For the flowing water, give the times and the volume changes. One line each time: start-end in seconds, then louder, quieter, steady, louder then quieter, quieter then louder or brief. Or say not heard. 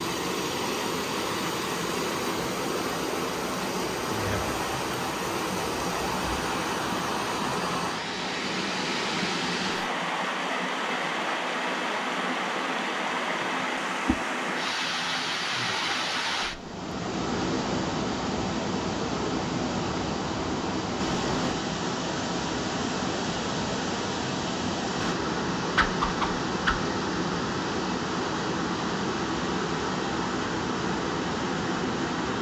0.0-32.3 steady.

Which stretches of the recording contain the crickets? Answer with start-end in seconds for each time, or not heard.
not heard.